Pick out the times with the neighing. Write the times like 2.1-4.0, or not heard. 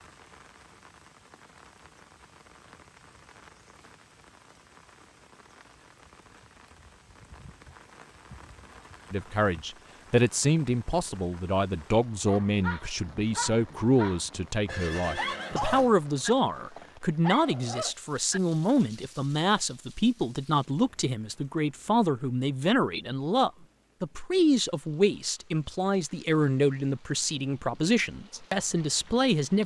14.7-15.9.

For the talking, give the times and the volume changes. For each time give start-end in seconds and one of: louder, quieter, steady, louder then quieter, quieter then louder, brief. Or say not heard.
9.1-29.6 steady.